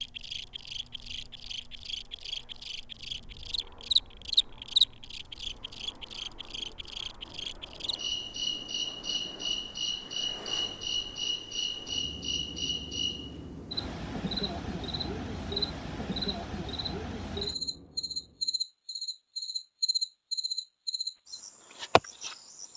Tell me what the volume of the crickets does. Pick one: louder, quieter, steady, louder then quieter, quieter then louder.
steady.